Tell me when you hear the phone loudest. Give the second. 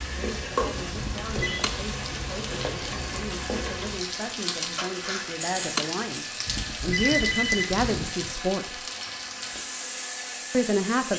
7 s.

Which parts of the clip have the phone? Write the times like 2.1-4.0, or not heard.
0.9-1.6, 6.5-8.2.